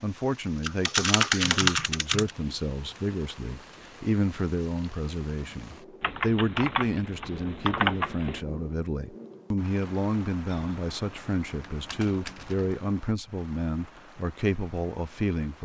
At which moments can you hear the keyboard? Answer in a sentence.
You can hear the keyboard from 0.6 to 2.3 s, from 6.0 to 8.4 s and from 10.5 to 12.8 s.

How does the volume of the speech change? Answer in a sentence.
The loudness of the speech stays about the same.